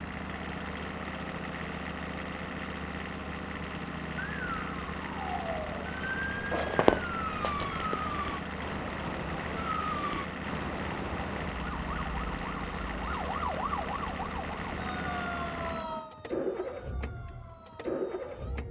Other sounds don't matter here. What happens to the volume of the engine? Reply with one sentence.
The loudness of the engine stays about the same.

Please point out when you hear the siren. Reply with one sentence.
You can hear the siren from 4.2 to 18.6 s.